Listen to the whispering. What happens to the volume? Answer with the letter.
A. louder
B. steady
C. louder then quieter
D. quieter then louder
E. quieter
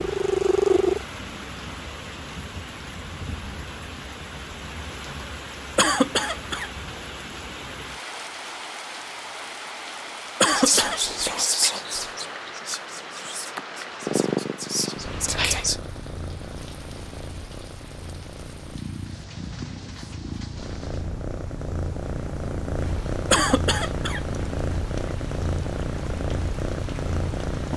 D.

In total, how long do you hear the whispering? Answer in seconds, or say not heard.
5 s.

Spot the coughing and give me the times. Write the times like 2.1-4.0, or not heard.
5.8-6.7, 10.4-11.0, 23.3-24.2.